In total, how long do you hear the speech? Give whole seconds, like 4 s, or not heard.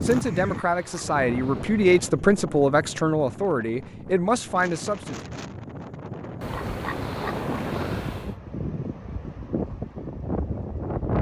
5 s.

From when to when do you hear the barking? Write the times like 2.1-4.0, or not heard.
not heard.